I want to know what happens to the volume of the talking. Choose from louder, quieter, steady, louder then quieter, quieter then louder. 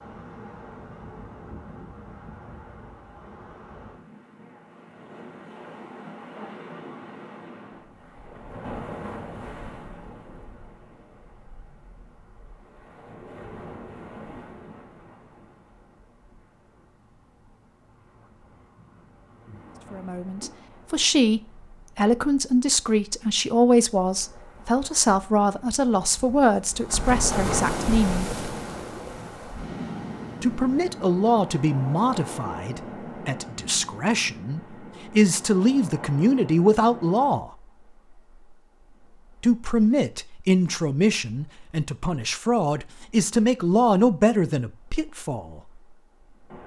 steady.